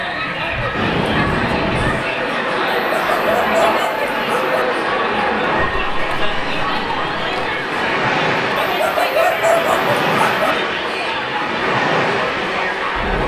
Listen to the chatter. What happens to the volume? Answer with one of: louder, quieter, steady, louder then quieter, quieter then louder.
steady.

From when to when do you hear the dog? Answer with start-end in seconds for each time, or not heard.
2.9-4.7, 8.6-10.6.